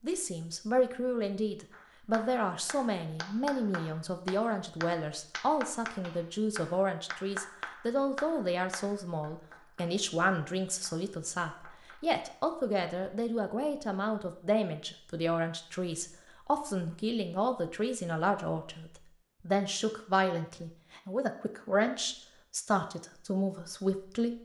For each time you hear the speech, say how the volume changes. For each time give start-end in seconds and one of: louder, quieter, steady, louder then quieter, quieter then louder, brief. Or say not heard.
0.0-24.4 steady.